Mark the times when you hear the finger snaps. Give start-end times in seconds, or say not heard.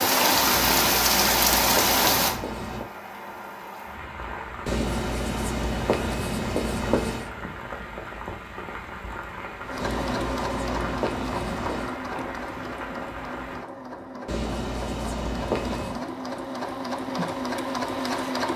not heard.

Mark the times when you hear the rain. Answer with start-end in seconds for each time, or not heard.
0.0-13.7.